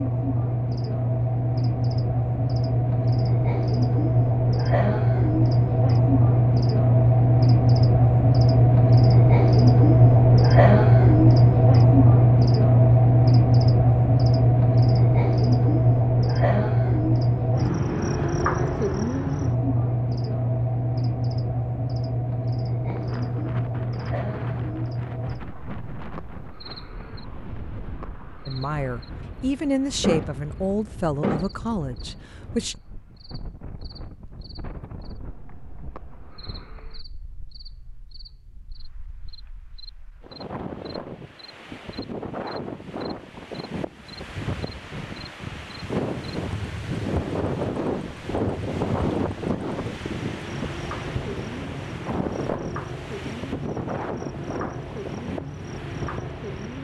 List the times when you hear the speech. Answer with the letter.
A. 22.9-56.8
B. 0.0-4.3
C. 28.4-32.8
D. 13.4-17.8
C.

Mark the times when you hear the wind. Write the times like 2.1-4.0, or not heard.
22.9-56.8.